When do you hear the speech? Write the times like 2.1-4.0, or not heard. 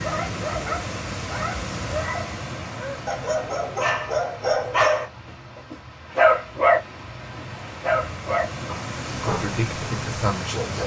9.1-10.8.